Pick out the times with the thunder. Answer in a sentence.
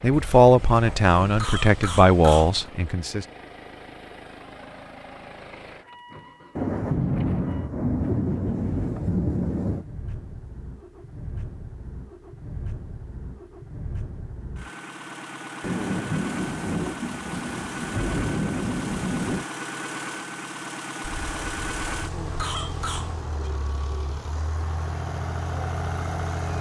You can hear the thunder from 6.5 to 9.8 s and from 15.6 to 19.4 s.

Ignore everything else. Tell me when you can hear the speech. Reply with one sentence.
The speech can be heard from 0.0 to 3.2 s.